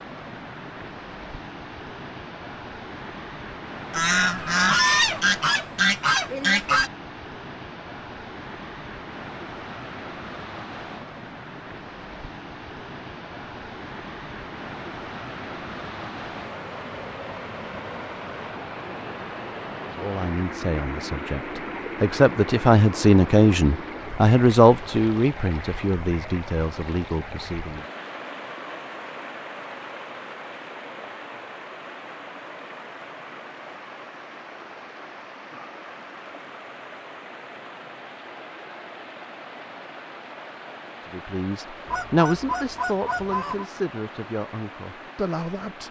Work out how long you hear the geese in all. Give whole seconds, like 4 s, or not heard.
5 s.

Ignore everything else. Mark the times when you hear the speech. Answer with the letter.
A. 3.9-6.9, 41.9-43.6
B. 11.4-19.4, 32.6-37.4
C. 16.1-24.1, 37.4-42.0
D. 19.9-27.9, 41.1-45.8
D.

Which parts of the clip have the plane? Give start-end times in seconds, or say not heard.
not heard.